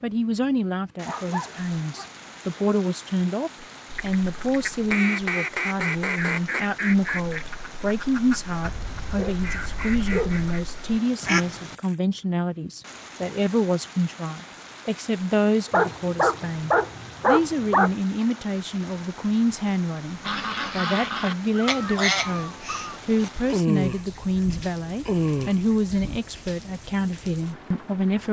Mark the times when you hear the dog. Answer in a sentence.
The dog can be heard from 1.1 to 2.5 s, from 8.7 to 10.5 s, from 15.7 to 17.9 s and from 21.5 to 23.0 s.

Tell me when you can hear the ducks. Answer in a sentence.
The ducks can be heard from 3.9 to 11.8 s and from 20.2 to 26.2 s.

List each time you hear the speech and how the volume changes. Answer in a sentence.
You can hear the speech from 0.0 to 28.2 s, at a steady volume.